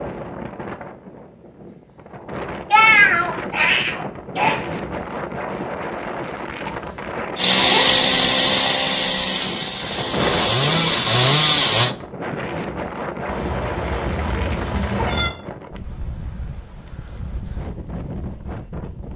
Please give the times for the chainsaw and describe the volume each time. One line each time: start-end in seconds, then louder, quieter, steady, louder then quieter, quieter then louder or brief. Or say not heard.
7.3-11.9 quieter then louder.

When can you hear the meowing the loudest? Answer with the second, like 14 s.
3 s.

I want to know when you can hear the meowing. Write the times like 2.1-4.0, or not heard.
2.7-4.5, 6.7-8.0, 13.2-15.3.